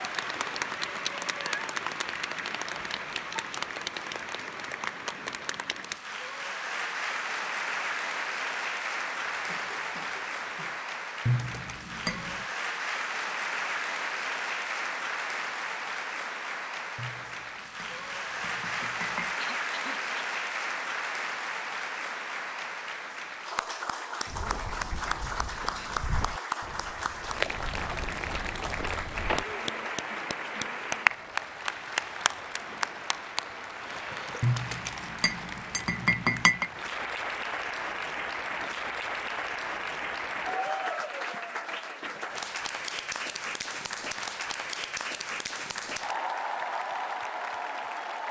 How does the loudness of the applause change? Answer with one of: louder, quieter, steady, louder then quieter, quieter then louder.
steady.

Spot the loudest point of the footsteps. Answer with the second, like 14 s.
29 s.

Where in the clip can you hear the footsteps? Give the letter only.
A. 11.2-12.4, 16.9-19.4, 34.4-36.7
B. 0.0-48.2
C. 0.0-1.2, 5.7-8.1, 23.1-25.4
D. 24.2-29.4
D.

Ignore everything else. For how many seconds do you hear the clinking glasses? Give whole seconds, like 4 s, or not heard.
6 s.